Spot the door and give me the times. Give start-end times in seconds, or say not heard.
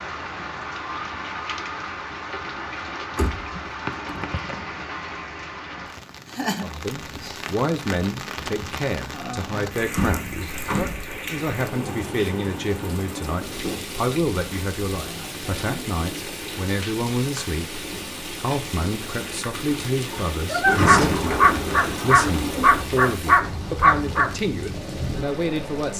3.1-4.8, 9.9-11.0, 20.6-22.9.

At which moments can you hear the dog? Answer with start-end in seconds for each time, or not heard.
20.1-25.9.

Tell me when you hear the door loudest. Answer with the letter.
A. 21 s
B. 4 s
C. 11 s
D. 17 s
A.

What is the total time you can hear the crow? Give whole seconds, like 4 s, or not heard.
not heard.